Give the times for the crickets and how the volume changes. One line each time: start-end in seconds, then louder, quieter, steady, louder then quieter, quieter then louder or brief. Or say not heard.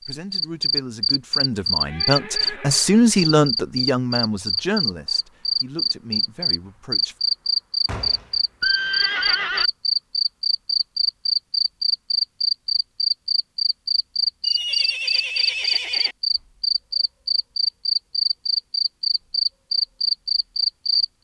0.0-21.1 steady.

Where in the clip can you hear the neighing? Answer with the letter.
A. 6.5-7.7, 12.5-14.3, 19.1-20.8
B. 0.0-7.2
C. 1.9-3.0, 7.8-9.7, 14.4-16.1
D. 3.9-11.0
C.